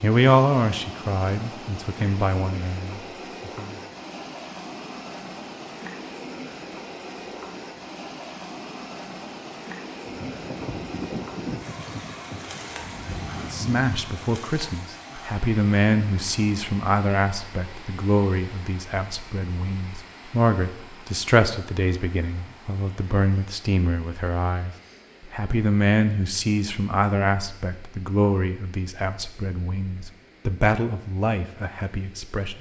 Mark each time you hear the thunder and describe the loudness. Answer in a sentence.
You can hear the thunder from 10.1 to 14.2 s, getting quieter then louder.